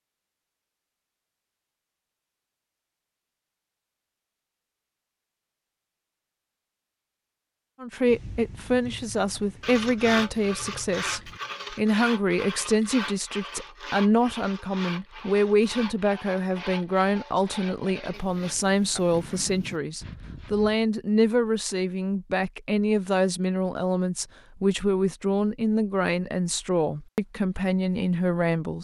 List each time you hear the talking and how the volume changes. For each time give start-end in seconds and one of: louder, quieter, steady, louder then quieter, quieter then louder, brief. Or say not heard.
7.8-28.7 steady.